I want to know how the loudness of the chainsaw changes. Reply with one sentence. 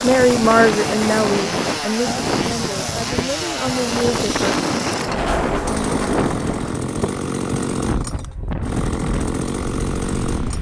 The loudness of the chainsaw stays about the same.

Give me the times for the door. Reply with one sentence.
You can hear the door from 5.0 to 6.8 s.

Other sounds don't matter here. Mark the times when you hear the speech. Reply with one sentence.
You can hear the speech from 0.0 to 4.5 s.